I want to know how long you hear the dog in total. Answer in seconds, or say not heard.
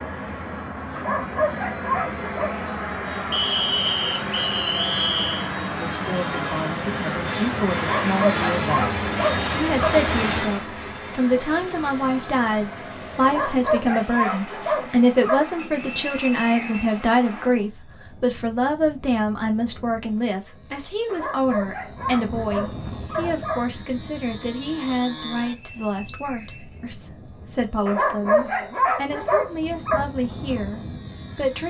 11 s.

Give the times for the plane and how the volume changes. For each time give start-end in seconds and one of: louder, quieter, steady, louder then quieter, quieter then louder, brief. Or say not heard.
0.0-31.6 quieter.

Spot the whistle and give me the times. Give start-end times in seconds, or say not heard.
3.3-5.5, 15.6-17.6, 25.4-27.3.